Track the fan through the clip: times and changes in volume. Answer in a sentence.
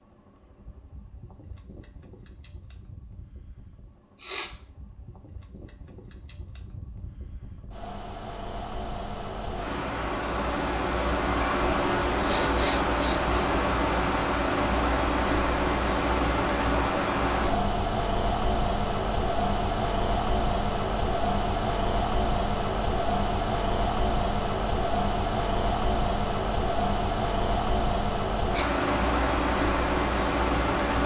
The fan can be heard from 0.0 to 31.0 s, getting louder.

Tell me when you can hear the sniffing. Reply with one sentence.
You can hear the sniffing from 4.2 to 4.6 s, from 12.2 to 13.2 s and from 27.9 to 28.7 s.